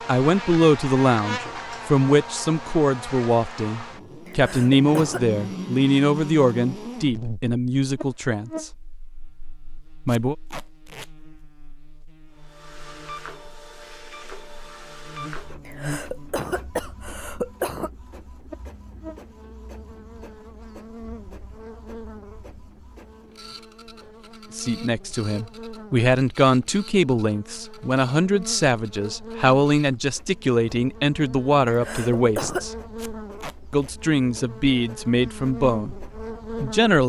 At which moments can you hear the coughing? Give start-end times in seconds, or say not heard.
4.2-5.2, 15.7-17.9, 31.6-32.6.